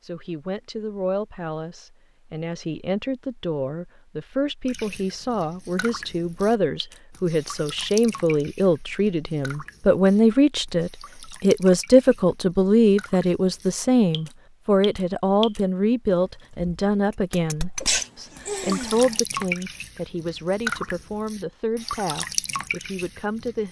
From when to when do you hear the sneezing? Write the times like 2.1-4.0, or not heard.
17.8-19.2.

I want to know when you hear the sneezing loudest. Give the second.
18 s.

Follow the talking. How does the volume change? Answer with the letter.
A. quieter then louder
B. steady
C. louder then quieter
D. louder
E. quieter
C.